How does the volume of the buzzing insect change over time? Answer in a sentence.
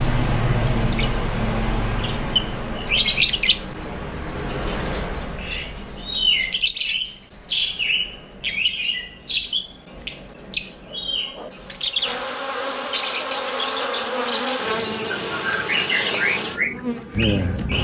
The loudness of the buzzing insect goes up.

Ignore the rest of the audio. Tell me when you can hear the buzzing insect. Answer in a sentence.
The buzzing insect can be heard from 10.8 to 17.7 s.